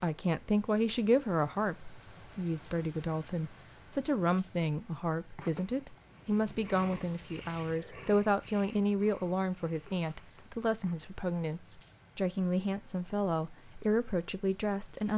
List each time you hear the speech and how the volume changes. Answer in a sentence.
You can hear the speech from 0.0 to 15.1 s, at a steady volume.